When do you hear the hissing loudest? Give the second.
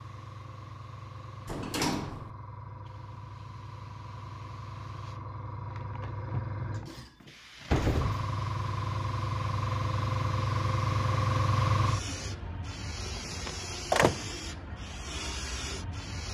11 s.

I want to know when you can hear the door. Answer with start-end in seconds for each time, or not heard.
1.4-2.3, 6.9-8.2, 13.4-14.3.